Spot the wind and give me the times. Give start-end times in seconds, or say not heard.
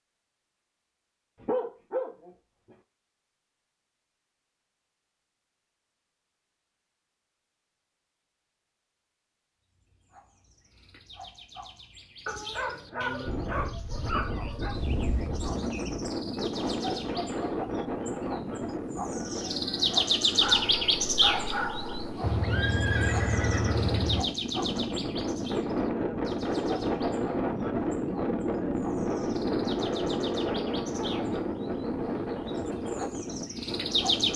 13.2-34.3.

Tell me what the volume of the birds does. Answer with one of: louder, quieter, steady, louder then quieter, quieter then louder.
louder then quieter.